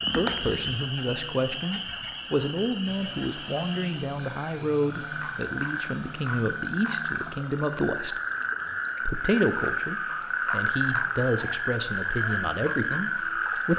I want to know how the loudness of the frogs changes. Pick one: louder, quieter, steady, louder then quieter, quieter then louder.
louder.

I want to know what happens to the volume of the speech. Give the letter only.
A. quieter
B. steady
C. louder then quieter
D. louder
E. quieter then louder
B.